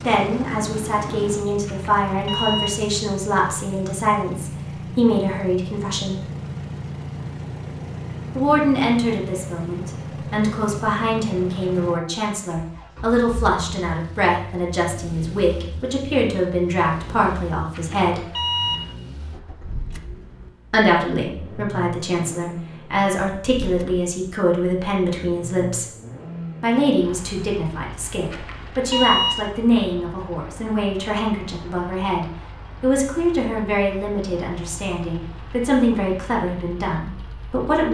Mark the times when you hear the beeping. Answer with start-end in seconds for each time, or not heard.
1.6-2.9, 17.7-18.9, 28.3-29.5.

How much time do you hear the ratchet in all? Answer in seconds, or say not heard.
not heard.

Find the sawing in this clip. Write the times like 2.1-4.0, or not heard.
not heard.